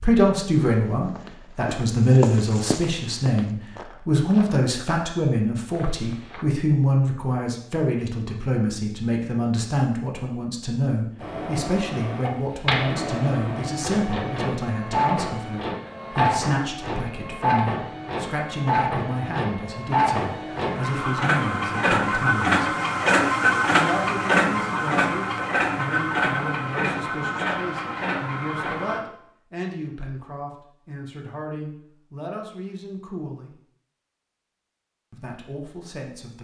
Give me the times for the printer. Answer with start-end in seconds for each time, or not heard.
11.2-29.0.